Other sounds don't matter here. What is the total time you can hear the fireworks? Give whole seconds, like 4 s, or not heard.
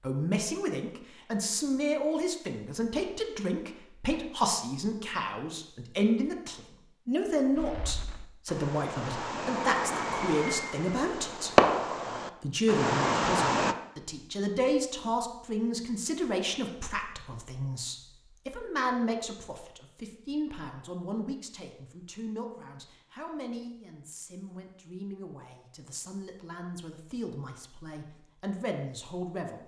6 s.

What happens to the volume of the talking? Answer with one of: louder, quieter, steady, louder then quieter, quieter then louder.
quieter.